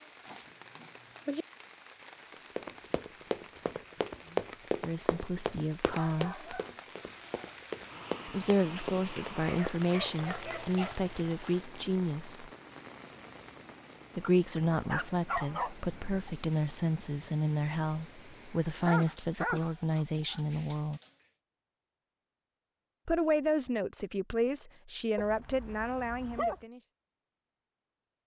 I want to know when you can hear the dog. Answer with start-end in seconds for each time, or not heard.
0.2-1.4, 5.3-6.8, 9.4-11.1, 14.7-16.3, 18.9-20.4, 25.1-26.6.